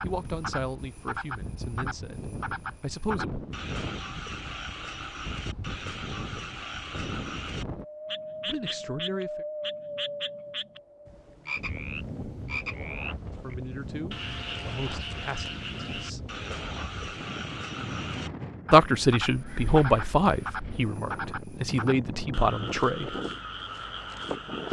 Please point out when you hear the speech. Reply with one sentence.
You can hear the speech from 0.0 to 3.4 s, from 8.4 to 9.4 s, from 13.4 to 16.2 s and from 18.7 to 23.1 s.